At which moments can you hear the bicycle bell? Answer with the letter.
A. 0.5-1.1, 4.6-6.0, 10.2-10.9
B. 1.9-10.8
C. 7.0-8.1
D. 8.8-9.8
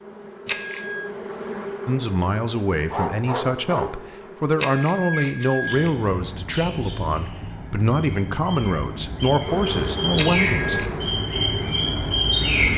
A.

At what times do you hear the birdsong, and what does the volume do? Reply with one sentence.
You can hear the birdsong from 5.1 to 12.7 s, getting louder.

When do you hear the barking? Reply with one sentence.
The barking can be heard from 2.9 to 4.0 s.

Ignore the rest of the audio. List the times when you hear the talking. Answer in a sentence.
The talking can be heard from 1.9 to 10.8 s.